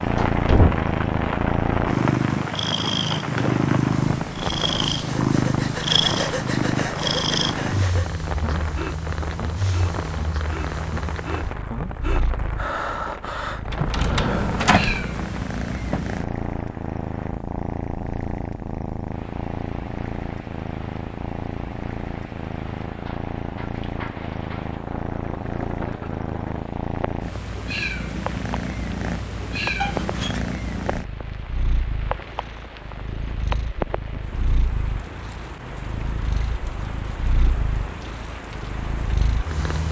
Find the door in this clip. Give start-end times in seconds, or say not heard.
0.1-0.8, 13.7-14.9, 29.8-30.4.